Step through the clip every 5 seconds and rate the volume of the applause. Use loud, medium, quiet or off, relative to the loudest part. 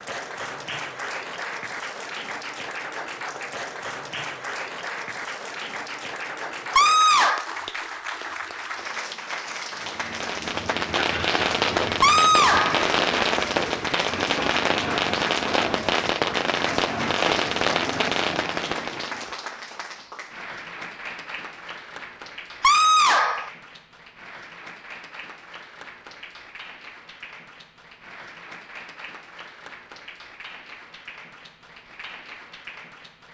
loud, loud, loud, loud, medium, medium, medium.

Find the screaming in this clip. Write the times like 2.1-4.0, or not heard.
6.8-7.5, 12.0-12.8, 22.6-23.5.